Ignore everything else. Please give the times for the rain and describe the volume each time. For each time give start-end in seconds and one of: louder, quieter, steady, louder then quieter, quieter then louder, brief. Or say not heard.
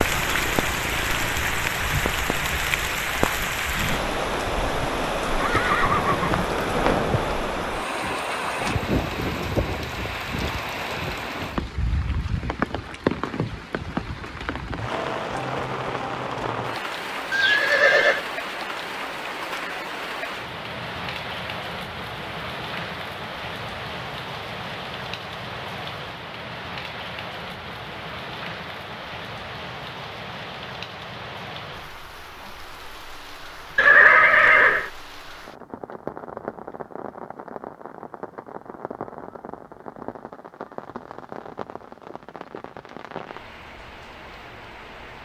0.0-45.1 quieter.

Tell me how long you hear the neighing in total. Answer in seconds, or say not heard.
4 s.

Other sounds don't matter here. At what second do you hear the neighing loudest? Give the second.
34 s.